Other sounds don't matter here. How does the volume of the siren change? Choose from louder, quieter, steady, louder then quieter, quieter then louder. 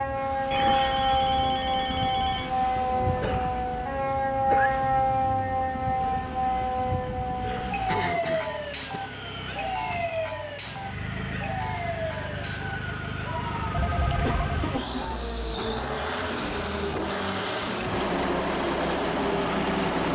quieter.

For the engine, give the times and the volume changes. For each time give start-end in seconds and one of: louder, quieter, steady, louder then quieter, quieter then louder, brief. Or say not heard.
0.0-20.1 louder.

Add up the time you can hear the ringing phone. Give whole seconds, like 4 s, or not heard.
3 s.